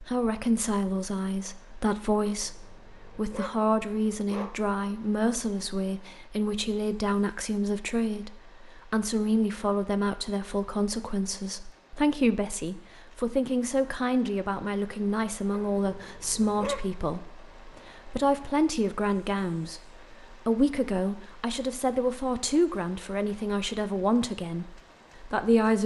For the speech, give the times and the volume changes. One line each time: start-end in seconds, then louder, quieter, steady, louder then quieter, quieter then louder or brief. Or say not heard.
0.0-25.8 steady.